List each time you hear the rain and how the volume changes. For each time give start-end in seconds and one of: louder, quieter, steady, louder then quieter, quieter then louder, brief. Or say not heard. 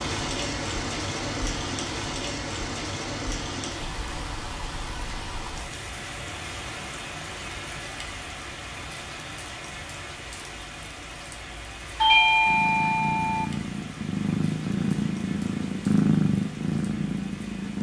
0.0-17.7 quieter.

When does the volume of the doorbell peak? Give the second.
12 s.